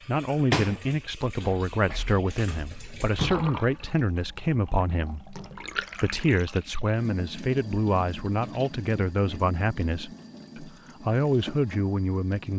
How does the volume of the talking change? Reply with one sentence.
The volume of the talking stays about the same.